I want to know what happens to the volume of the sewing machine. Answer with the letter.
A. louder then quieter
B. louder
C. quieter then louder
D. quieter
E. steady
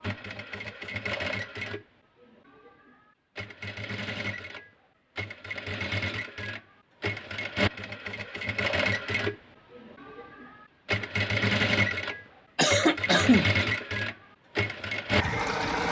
B.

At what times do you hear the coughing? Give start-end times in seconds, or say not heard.
12.6-13.4.